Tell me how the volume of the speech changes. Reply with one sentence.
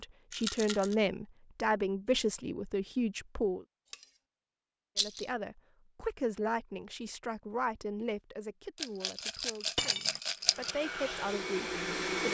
The volume of the speech goes down.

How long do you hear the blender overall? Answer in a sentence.
You can hear the blender for 2 seconds altogether.